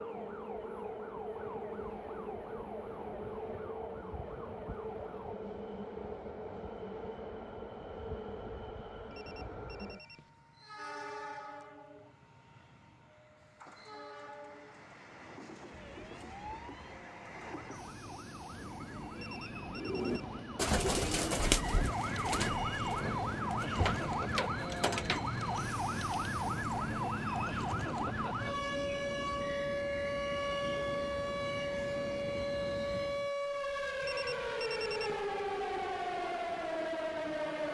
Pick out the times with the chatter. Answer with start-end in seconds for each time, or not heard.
not heard.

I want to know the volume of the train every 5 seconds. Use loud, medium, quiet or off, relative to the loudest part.
loud, loud, medium, medium, loud, loud, loud, off.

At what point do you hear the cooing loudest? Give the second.
21 s.